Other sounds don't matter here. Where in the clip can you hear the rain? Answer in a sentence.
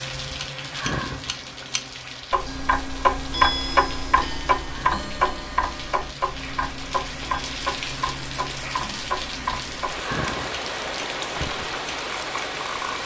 The rain can be heard from 0.0 to 13.0 s.